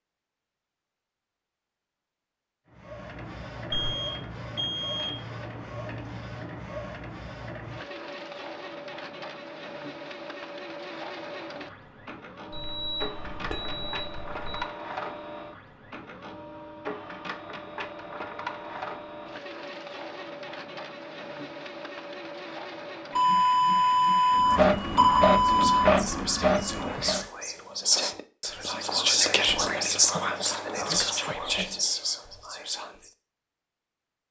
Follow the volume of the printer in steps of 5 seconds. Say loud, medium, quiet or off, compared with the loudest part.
quiet, quiet, quiet, quiet, medium, loud, off.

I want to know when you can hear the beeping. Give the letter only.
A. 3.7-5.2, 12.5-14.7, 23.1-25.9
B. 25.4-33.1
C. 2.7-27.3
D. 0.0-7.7
A.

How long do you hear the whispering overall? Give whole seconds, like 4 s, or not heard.
8 s.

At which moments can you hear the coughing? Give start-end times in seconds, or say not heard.
not heard.